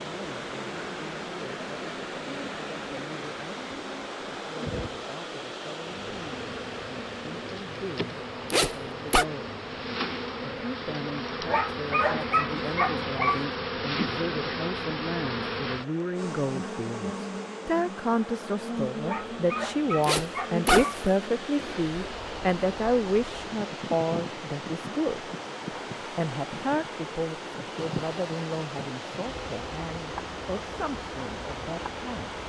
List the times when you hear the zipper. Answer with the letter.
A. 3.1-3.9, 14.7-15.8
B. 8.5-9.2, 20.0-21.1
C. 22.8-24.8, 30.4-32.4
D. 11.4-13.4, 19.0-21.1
B.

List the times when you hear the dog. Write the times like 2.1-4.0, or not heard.
11.4-13.4, 19.0-21.1.